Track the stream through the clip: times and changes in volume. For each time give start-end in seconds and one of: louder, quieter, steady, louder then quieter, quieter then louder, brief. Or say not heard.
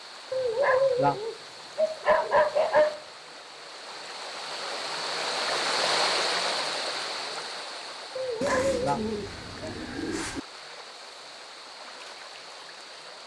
0.0-13.2 louder then quieter.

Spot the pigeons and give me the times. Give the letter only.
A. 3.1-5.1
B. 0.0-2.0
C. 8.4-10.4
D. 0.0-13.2
C.